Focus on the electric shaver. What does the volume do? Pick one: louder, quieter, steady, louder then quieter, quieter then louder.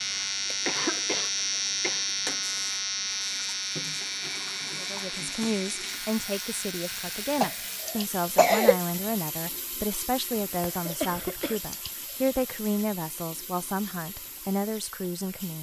quieter.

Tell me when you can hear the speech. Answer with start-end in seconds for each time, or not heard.
4.8-15.5.